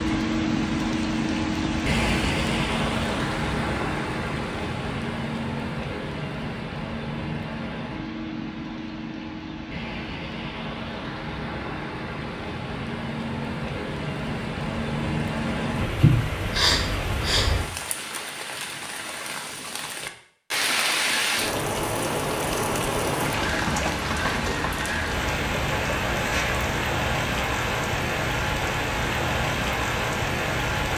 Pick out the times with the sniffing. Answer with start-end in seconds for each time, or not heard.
16.0-17.4.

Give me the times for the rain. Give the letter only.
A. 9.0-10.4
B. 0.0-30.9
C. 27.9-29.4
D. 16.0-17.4
B.